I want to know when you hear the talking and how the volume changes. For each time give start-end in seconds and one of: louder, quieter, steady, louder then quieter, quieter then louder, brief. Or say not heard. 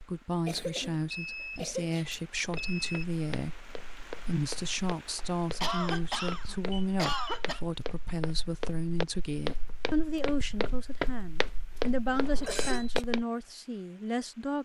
0.0-14.5 steady.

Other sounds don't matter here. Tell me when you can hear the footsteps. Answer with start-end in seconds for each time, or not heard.
2.4-13.2.